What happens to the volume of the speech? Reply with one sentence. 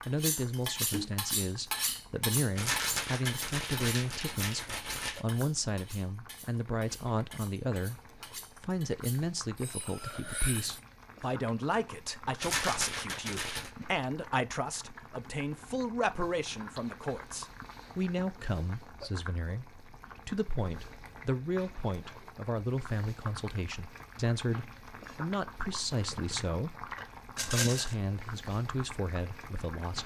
The volume of the speech stays about the same.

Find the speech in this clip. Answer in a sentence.
You can hear the speech from 0.1 to 8.0 s and from 8.6 to 30.0 s.